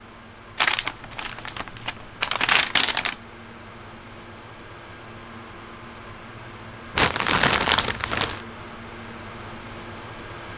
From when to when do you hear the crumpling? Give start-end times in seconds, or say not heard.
0.6-3.1, 7.0-8.4.